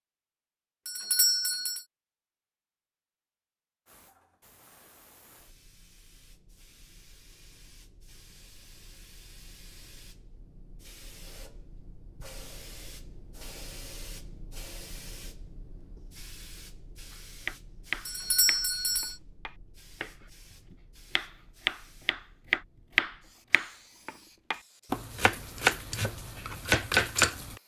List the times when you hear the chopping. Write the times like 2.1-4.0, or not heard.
17.1-20.1, 20.7-27.6.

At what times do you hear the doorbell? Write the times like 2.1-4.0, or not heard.
0.8-1.9, 18.1-19.1.